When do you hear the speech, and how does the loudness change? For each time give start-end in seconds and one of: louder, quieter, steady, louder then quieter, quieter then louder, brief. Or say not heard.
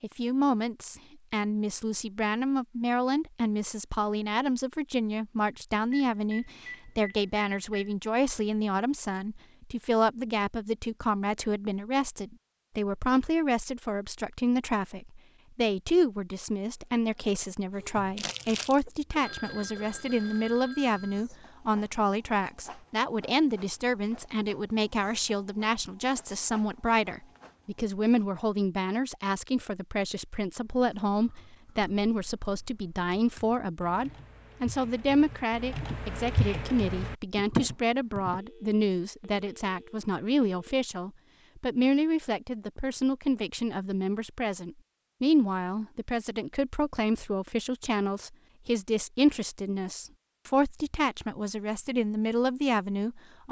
0.0-53.4 steady.